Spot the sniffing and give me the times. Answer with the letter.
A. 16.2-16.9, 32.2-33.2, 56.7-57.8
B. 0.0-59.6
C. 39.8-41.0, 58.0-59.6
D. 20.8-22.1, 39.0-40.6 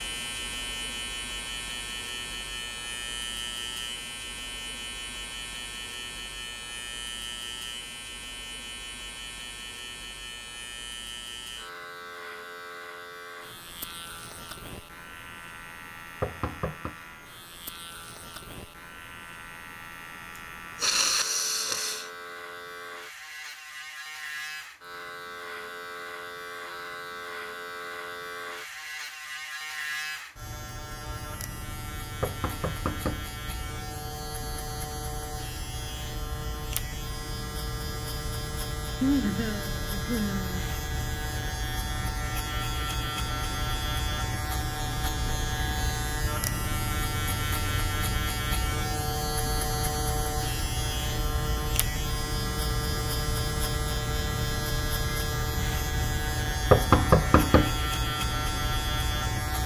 D.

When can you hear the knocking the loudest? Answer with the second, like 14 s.
57 s.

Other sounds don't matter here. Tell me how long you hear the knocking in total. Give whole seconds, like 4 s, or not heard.
3 s.